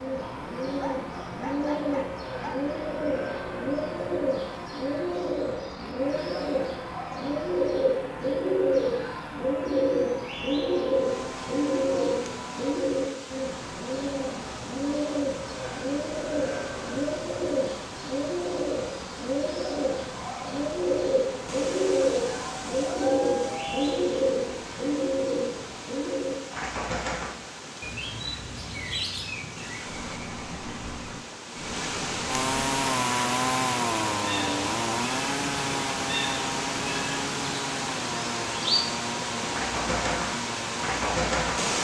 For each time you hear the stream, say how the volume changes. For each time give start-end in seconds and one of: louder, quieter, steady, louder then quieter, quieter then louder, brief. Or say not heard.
10.9-41.7 louder.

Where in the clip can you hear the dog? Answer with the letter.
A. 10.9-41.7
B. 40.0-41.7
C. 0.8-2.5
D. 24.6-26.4
C.